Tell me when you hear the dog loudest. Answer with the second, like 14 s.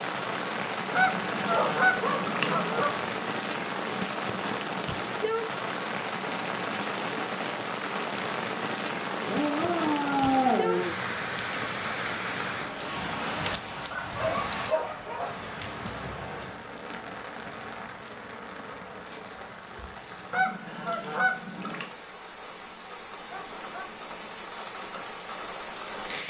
10 s.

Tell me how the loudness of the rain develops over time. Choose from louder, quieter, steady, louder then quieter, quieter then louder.
quieter.